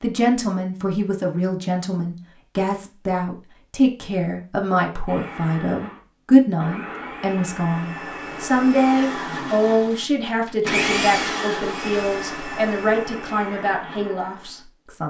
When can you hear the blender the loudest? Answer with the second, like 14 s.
11 s.